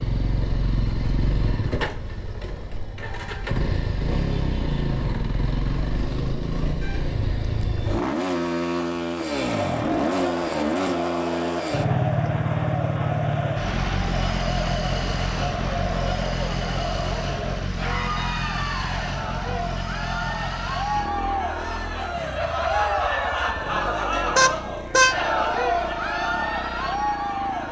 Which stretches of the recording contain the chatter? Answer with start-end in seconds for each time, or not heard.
9.6-27.6.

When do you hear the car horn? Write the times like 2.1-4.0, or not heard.
24.4-25.1.